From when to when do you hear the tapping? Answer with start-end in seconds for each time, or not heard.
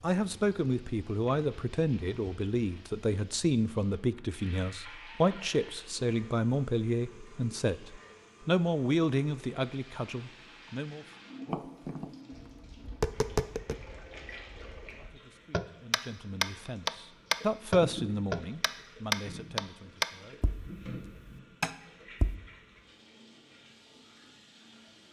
11.4-22.4.